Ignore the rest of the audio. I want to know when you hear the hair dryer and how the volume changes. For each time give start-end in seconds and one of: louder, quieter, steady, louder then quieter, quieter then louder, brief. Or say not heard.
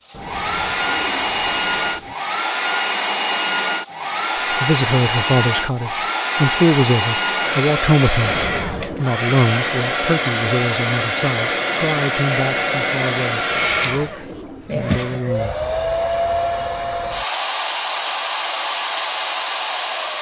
0.1-20.1 steady.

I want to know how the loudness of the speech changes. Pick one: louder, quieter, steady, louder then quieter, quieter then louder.
quieter.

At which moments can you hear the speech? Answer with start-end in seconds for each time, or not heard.
4.5-15.6.